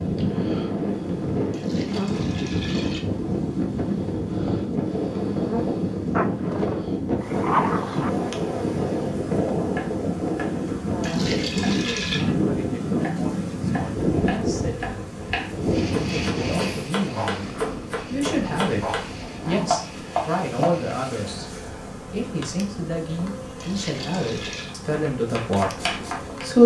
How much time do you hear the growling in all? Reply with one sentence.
The growling can be heard for 4 seconds in total.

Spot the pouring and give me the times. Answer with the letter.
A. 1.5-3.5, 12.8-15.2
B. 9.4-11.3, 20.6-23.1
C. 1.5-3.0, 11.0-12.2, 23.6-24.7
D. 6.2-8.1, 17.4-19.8
C.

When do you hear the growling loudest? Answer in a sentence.
The loudest moment of the growling is at 8 seconds.